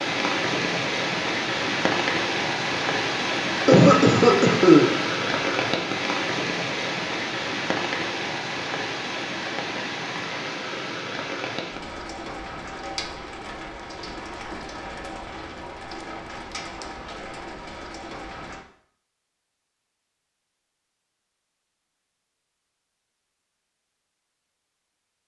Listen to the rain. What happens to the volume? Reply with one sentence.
The loudness of the rain goes down.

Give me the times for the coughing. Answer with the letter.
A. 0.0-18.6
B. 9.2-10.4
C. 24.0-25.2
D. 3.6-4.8
D.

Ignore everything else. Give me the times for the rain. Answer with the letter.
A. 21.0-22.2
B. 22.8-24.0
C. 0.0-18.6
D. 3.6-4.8
C.